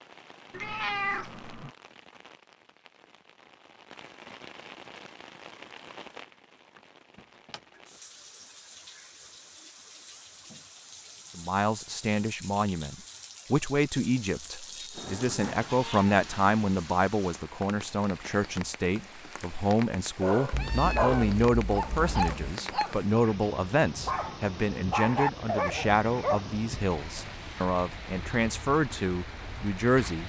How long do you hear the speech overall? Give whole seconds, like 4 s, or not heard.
19 s.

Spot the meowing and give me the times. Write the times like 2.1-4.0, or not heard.
0.5-1.7, 14.9-16.5, 20.5-22.4.